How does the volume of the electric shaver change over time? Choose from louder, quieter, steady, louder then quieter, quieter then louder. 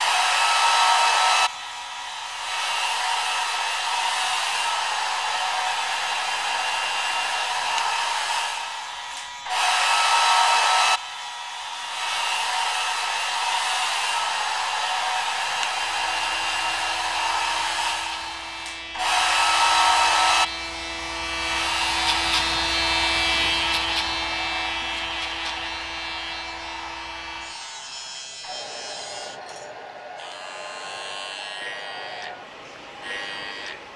louder then quieter.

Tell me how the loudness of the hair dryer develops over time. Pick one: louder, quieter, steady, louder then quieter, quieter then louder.
quieter.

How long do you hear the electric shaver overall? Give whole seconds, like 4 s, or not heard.
34 s.